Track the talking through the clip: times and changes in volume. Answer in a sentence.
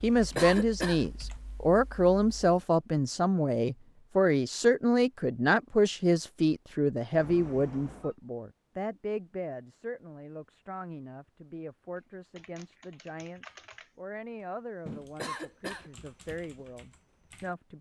You can hear the talking from 0.0 to 17.7 s, getting quieter.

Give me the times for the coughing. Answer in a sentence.
You can hear the coughing from 0.3 to 1.1 s and from 15.2 to 15.9 s.